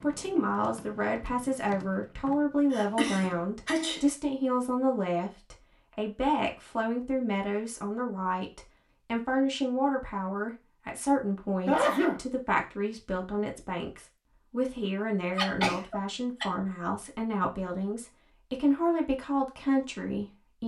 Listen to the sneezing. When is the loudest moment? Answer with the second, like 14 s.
12 s.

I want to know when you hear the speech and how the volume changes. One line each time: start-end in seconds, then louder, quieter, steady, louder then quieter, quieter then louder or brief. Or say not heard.
0.0-20.6 steady.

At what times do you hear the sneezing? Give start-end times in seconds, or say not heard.
2.7-4.0, 11.7-12.2, 15.3-16.4.